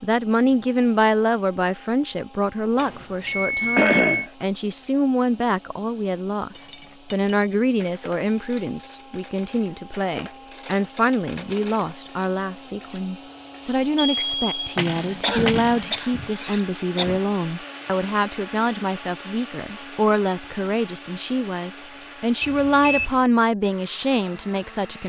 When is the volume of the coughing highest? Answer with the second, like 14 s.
4 s.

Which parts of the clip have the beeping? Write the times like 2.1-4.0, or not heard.
2.8-4.3, 14.2-14.8, 22.4-23.2.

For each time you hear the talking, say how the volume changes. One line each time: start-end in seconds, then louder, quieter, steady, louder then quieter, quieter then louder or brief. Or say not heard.
0.0-25.0 steady.